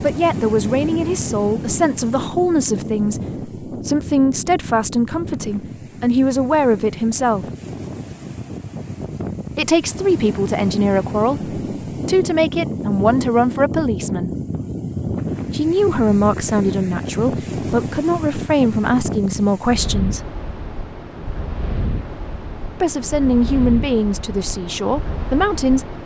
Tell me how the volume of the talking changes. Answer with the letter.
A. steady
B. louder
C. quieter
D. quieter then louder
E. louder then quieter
A.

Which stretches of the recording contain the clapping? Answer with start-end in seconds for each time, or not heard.
not heard.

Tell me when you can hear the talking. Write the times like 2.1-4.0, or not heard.
0.0-7.5, 9.6-14.3, 15.5-20.3, 22.8-25.9.